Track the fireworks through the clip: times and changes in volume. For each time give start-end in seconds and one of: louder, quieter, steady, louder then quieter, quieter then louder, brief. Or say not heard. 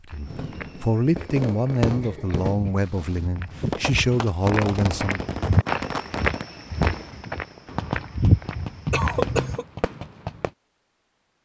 0.2-10.5 steady.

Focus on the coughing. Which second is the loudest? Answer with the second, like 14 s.
9 s.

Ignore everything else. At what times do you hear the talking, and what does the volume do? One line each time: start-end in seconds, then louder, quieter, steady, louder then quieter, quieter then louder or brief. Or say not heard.
0.1-5.2 quieter then louder.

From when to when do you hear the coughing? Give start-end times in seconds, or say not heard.
2.0-2.9, 8.9-9.7.